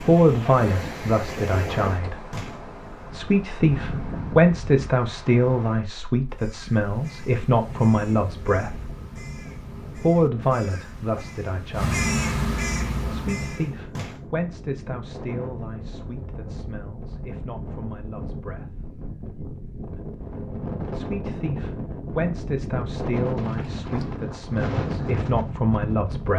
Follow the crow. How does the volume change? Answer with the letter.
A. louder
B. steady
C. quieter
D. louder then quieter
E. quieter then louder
A.